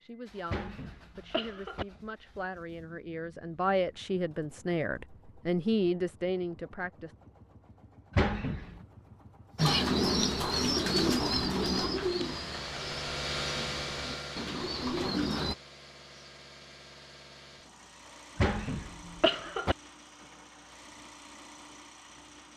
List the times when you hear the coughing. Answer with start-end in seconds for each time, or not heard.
0.5-1.9, 8.1-8.8, 18.4-19.8.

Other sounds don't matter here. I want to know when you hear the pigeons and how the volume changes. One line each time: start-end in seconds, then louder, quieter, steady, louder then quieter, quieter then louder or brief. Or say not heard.
9.6-15.6 quieter then louder.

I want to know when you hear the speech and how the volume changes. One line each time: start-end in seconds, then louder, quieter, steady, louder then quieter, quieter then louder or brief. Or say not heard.
0.0-7.2 louder.